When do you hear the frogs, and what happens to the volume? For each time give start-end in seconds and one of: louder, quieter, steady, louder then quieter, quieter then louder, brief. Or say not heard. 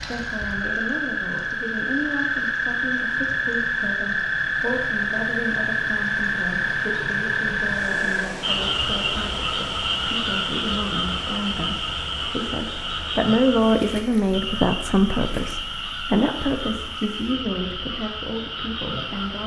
0.0-19.4 quieter.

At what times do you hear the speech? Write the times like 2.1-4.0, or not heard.
0.0-19.4.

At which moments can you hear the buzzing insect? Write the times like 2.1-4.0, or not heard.
not heard.